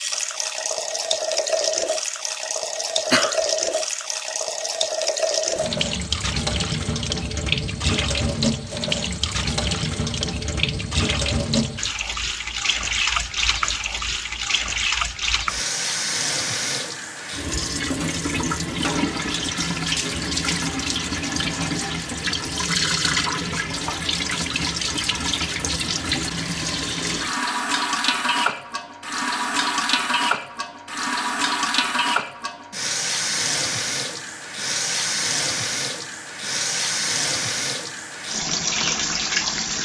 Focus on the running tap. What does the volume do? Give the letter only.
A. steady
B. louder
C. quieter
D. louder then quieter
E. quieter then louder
A.